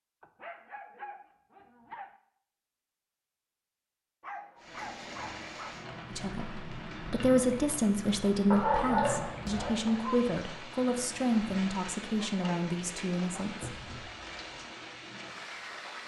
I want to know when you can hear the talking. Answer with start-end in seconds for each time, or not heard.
6.1-13.7.